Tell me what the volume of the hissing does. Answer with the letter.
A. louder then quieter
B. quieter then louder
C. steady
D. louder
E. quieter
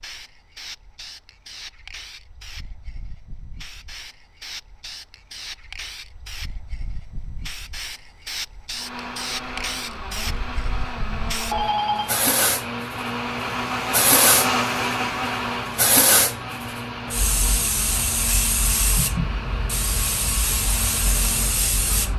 D.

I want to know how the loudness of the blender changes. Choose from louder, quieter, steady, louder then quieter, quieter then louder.
louder then quieter.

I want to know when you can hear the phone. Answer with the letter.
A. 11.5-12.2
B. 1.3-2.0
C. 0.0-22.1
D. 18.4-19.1
A.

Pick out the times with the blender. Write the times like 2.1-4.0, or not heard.
8.7-22.1.